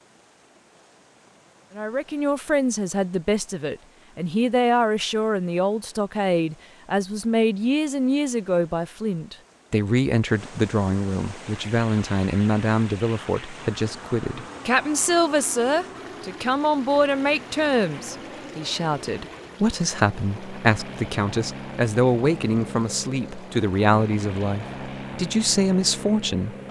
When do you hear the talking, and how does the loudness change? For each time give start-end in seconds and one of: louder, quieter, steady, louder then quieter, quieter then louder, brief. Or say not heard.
1.8-26.6 steady.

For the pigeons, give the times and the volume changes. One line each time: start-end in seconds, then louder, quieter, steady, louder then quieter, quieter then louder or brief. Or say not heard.
not heard.